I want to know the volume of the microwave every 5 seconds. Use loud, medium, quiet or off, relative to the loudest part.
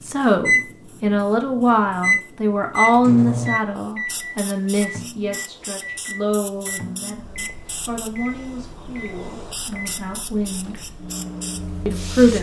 loud, quiet, quiet.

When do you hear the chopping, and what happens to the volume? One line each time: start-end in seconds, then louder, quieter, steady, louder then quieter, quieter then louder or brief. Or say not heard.
not heard.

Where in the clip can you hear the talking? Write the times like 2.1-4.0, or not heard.
0.0-10.8, 11.8-12.3.